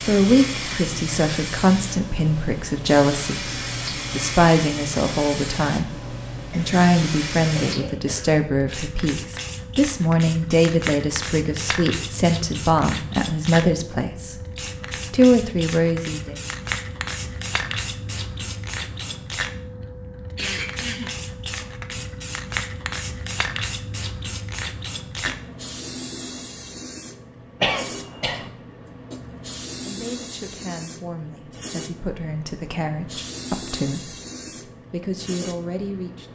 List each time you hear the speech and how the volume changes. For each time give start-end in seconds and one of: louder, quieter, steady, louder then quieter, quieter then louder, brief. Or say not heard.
0.0-16.4 steady
29.9-36.3 louder.